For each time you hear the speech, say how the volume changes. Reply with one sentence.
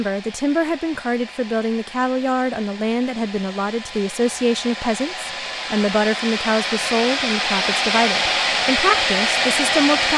You can hear the speech from 0.0 to 10.1 s, at a steady volume.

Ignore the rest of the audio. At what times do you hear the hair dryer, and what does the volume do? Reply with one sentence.
You can hear the hair dryer from 0.0 to 10.1 s, getting louder.